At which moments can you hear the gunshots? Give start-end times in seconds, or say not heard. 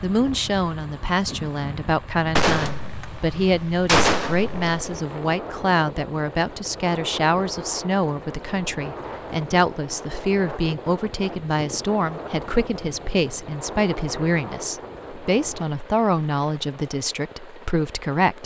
2.4-4.8.